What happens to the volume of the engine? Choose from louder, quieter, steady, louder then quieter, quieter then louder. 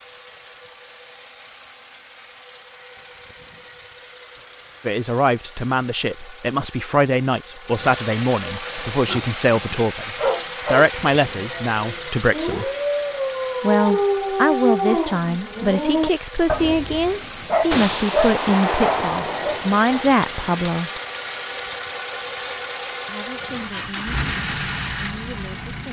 louder.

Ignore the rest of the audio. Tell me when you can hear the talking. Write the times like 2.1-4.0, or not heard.
4.8-12.7, 13.6-20.9, 23.1-25.8.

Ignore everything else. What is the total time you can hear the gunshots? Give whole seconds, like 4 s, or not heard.
3 s.